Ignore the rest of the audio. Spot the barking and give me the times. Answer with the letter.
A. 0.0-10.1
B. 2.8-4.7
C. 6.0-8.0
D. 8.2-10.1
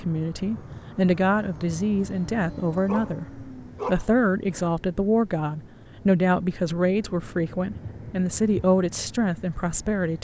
B.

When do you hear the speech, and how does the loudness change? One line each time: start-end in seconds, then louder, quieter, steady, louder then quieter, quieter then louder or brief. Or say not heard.
0.0-10.1 steady.